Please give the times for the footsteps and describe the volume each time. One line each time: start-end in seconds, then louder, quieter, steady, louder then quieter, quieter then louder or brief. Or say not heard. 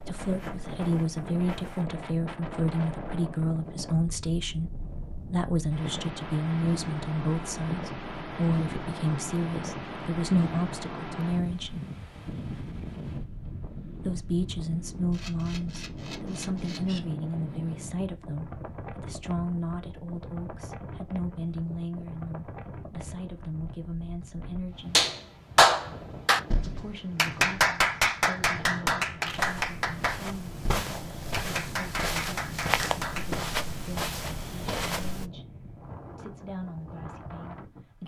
0.0-1.9 brief
29.2-35.3 louder.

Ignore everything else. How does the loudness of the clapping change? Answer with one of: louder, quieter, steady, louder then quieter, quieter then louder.
quieter.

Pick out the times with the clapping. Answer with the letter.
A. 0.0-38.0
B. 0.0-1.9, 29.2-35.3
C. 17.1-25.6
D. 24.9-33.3
D.